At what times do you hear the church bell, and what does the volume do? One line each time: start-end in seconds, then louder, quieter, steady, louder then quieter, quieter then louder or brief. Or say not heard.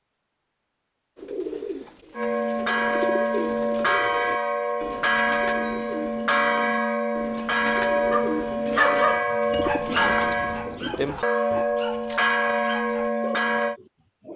2.1-13.8 steady.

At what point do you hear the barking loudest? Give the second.
9 s.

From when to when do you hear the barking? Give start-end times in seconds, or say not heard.
8.1-14.3.